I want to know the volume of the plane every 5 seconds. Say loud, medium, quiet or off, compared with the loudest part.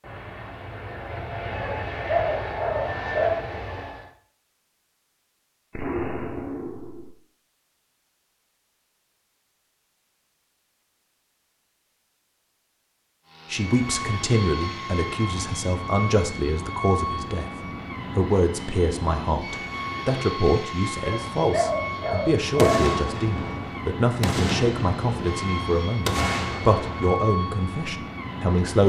loud, off, loud, loud, loud, loud.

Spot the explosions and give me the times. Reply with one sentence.
You can hear the explosions from 5.7 to 7.1 s and from 22.6 to 27.2 s.